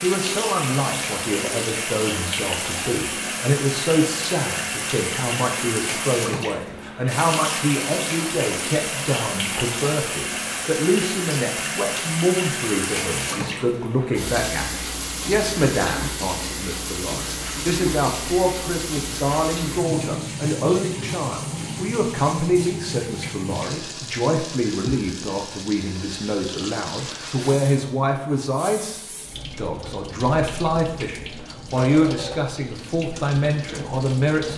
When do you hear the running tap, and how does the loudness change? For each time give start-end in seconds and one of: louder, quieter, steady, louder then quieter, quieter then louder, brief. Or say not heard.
0.0-34.5 quieter.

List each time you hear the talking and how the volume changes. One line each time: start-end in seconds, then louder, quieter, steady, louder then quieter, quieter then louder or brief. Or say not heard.
0.0-34.5 steady.